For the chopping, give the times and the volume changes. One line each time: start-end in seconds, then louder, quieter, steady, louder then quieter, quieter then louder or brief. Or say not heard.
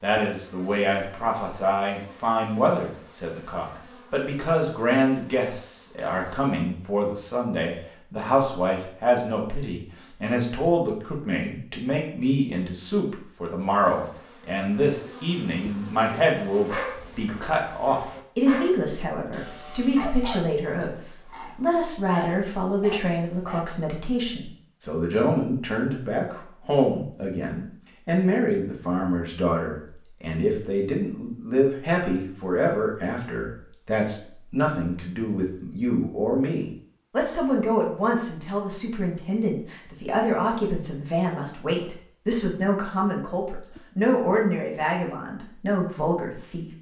not heard.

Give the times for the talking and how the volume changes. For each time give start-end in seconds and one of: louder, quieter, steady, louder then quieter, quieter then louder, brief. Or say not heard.
0.0-46.7 steady.